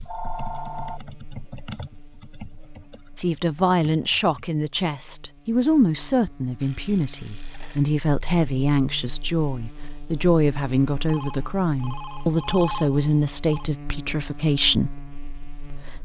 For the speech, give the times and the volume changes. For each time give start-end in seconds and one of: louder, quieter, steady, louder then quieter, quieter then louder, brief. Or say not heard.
3.1-15.9 steady.